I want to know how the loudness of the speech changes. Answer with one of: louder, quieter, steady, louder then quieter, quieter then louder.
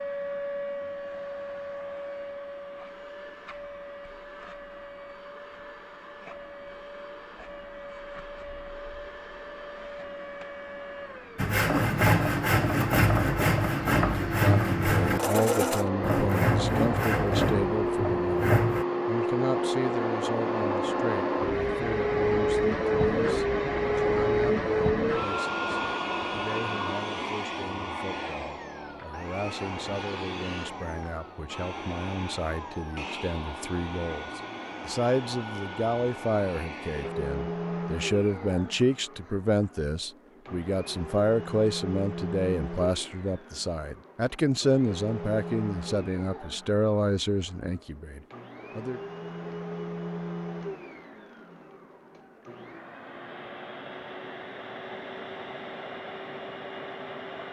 quieter then louder.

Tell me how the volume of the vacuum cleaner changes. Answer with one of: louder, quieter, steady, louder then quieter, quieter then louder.
louder then quieter.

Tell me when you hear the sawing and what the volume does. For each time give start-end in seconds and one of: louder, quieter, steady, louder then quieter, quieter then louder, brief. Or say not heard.
11.3-18.9 quieter.